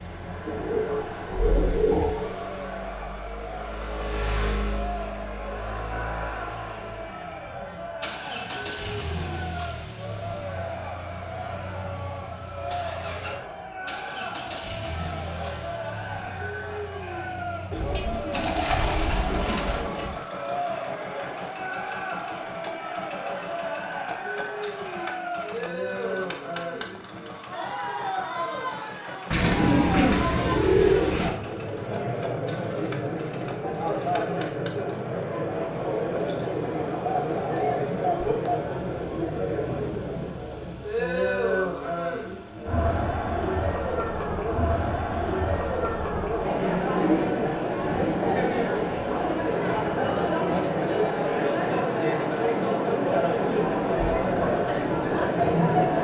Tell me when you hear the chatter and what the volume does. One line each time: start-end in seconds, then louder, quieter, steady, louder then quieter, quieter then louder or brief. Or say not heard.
0.0-55.9 louder.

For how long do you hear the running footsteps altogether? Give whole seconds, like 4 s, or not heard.
not heard.